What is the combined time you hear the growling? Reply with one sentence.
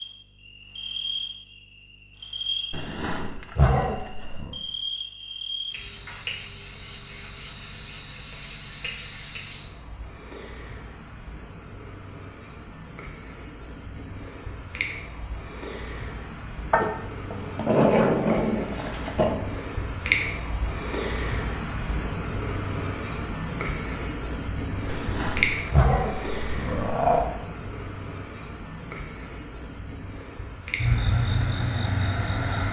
You can hear the growling for 7 seconds altogether.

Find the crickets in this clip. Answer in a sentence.
The crickets can be heard from 0.0 to 32.6 s.